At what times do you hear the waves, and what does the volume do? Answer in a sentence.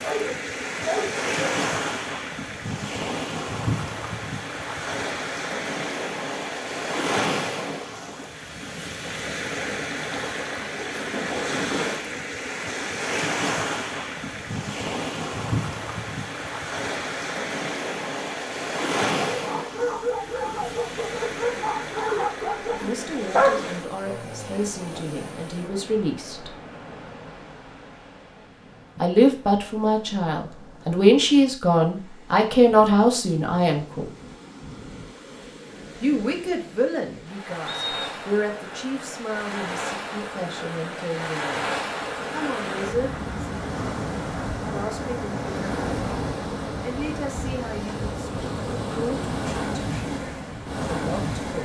You can hear the waves from 0.0 to 51.5 s, getting quieter then louder.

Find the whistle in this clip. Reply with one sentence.
You can hear the whistle from 37.6 to 38.2 s.